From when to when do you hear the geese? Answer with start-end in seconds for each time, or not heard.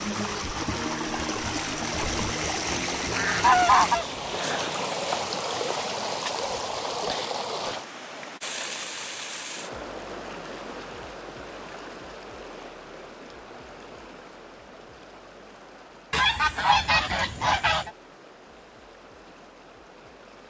1.9-4.2, 16.1-17.9.